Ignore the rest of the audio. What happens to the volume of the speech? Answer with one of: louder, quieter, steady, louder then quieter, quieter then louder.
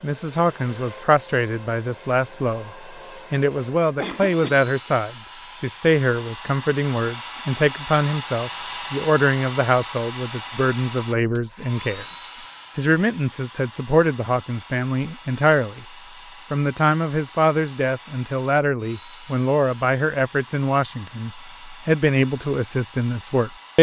steady.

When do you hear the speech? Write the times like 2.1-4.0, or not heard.
0.0-15.8, 16.5-23.7.